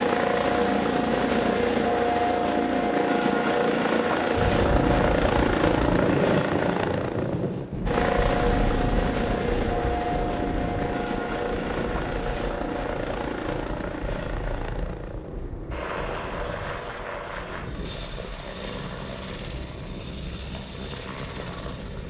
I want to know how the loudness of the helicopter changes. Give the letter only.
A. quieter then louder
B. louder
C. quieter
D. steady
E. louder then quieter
C.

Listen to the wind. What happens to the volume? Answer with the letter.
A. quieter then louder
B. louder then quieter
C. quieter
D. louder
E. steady
C.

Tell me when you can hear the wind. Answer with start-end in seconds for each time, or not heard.
4.3-21.8.